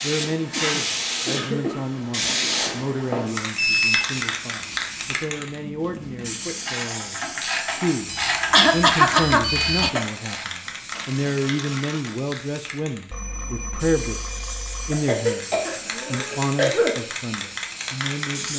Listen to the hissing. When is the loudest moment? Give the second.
3 s.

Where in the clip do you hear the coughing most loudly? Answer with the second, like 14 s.
9 s.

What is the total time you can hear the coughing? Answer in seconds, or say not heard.
5 s.